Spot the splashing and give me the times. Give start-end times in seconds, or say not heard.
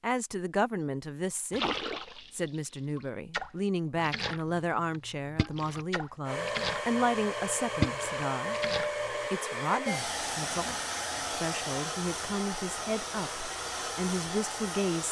1.5-9.2.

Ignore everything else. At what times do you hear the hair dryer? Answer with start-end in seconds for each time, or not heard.
6.2-15.0.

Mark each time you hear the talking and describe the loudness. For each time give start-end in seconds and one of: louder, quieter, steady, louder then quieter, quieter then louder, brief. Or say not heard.
0.0-15.0 steady.